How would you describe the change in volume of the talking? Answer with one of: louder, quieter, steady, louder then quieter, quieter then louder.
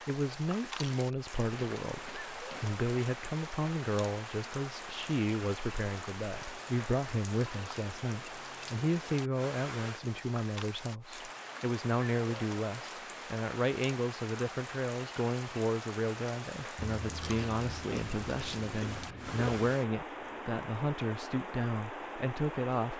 steady.